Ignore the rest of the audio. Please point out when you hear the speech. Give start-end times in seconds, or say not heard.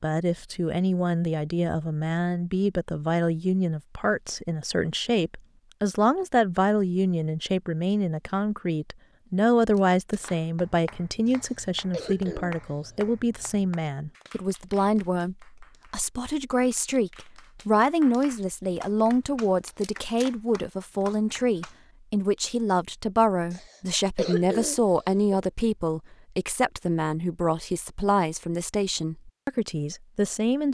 0.0-30.6.